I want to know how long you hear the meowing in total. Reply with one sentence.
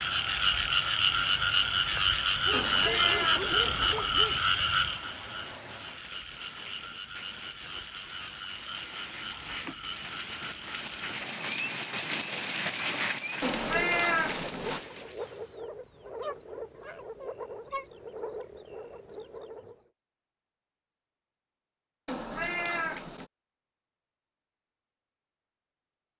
The meowing can be heard for 4 seconds in total.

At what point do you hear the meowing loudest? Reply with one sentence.
The loudest moment of the meowing is at 14 seconds.